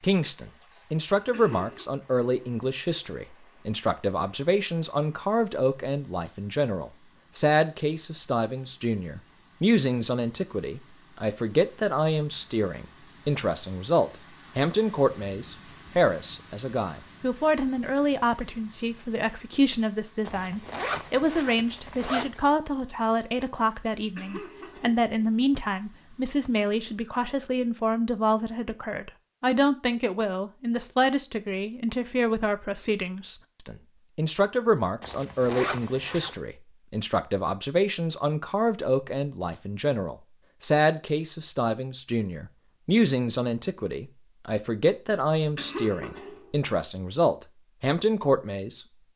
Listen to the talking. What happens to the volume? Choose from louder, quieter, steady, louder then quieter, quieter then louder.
steady.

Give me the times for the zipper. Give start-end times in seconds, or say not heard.
20.2-22.4, 35.0-36.4.